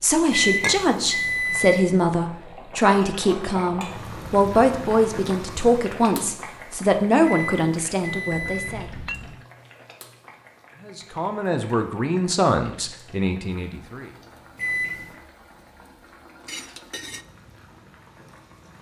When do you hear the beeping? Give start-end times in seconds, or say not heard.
0.3-1.8, 7.2-8.8, 14.6-15.2.